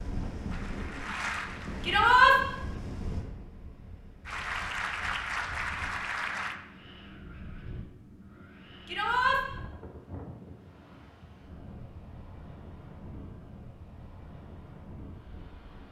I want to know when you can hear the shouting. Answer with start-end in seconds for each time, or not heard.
1.8-2.4, 8.8-9.4.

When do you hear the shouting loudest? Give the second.
2 s.